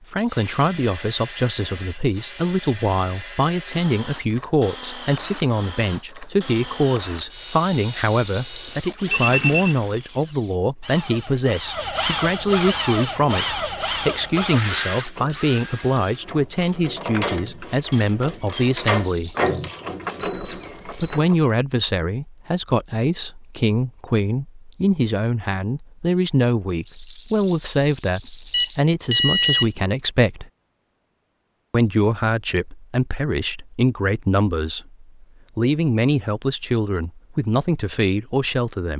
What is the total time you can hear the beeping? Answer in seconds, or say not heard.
3 s.